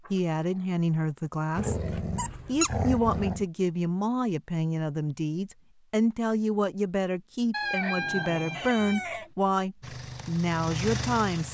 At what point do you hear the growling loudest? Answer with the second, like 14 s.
3 s.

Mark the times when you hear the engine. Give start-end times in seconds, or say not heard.
9.8-11.4.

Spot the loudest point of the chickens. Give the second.
8 s.